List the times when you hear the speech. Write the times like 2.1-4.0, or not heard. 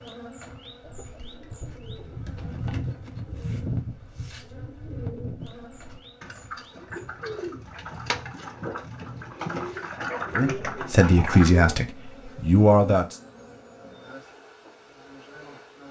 10.3-13.2.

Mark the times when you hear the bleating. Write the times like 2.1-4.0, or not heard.
not heard.